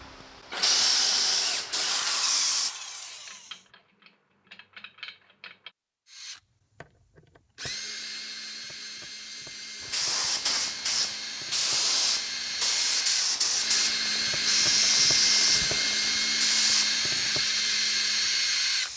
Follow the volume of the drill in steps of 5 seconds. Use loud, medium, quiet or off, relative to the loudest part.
medium, quiet, medium, loud.